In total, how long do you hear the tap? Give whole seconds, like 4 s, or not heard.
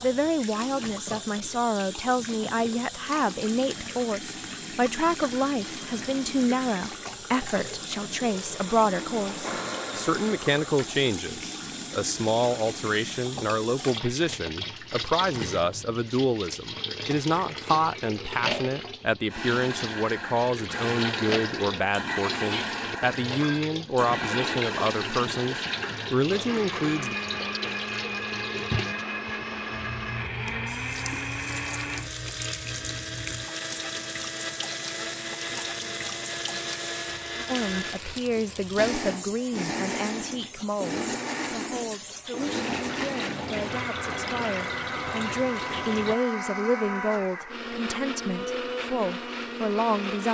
46 s.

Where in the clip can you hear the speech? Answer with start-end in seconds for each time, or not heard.
0.0-27.1, 37.5-50.2.